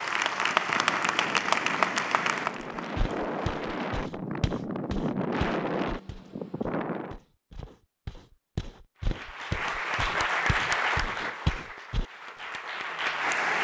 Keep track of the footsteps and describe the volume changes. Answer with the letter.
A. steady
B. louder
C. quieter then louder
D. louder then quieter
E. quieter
C.